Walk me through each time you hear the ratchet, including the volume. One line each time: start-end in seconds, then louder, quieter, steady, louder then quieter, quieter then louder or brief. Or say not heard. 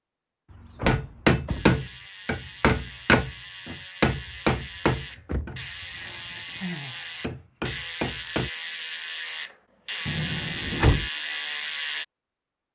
1.4-12.1 louder.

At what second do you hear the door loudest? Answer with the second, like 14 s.
11 s.